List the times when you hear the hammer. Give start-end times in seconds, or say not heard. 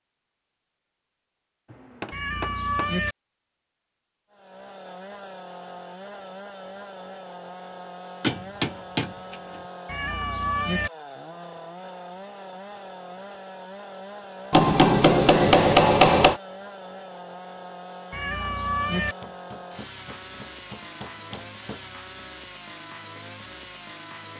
1.6-3.0, 8.2-9.6, 14.5-16.4, 19.0-21.8.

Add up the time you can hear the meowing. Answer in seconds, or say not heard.
3 s.